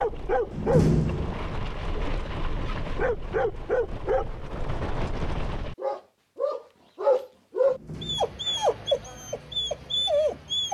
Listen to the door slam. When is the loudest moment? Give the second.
1 s.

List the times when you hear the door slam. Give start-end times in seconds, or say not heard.
0.5-1.4, 7.7-8.4.